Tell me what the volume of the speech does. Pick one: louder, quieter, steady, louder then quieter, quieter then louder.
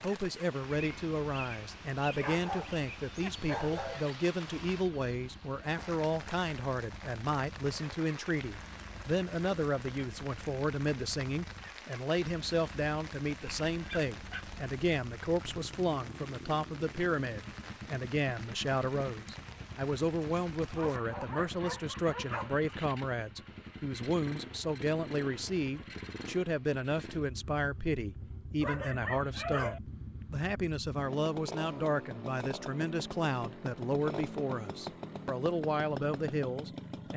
steady.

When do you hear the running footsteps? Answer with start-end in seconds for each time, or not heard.
not heard.